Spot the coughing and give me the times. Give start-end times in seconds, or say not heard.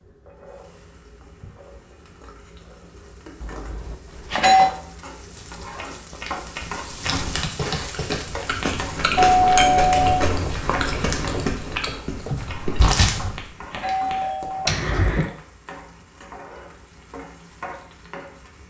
14.7-15.3.